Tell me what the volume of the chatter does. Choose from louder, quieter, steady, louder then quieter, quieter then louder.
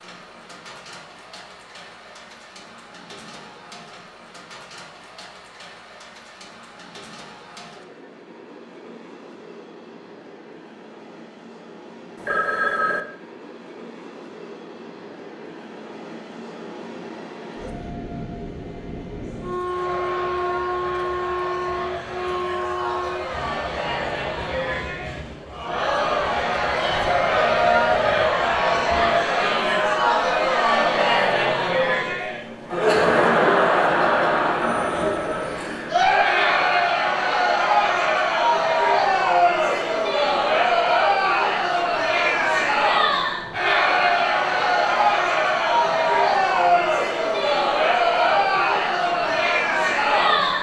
louder.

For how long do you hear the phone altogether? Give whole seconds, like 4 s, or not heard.
3 s.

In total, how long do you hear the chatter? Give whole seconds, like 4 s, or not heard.
31 s.